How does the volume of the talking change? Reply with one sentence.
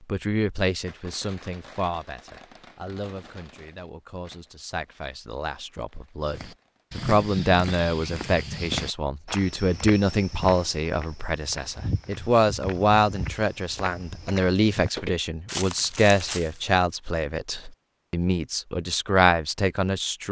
The volume of the talking goes up.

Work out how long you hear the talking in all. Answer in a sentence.
The talking can be heard for 20 seconds in total.